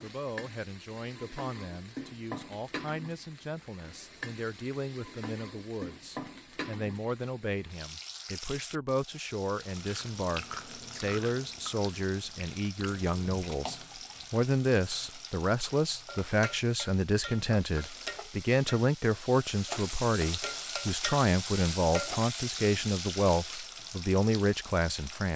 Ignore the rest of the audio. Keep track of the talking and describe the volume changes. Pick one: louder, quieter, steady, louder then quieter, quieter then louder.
louder.